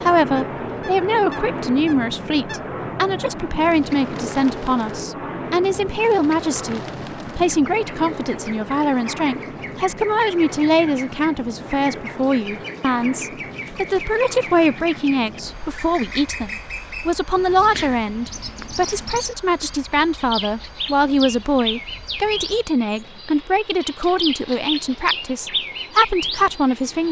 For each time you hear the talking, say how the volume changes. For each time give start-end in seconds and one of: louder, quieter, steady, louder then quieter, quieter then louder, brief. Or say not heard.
0.0-27.0 steady.